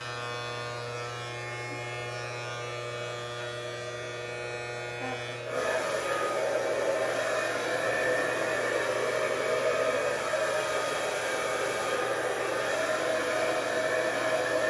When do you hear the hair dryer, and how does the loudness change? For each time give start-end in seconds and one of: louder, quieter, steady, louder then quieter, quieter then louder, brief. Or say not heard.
0.0-14.6 louder.